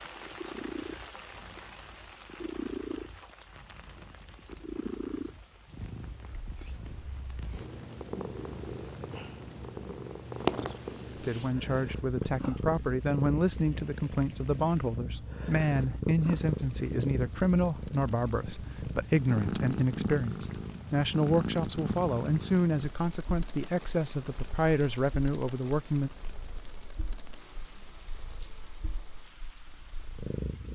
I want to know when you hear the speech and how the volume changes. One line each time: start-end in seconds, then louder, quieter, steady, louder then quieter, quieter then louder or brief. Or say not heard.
11.2-26.1 steady.